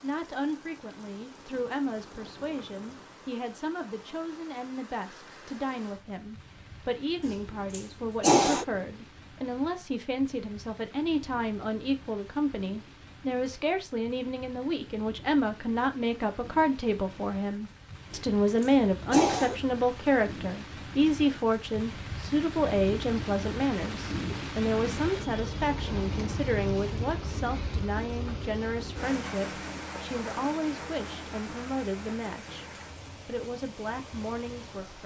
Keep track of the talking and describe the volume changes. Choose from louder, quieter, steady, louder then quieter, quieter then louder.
louder then quieter.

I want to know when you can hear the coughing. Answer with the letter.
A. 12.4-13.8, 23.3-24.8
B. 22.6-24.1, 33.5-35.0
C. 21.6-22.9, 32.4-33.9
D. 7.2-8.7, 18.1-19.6
D.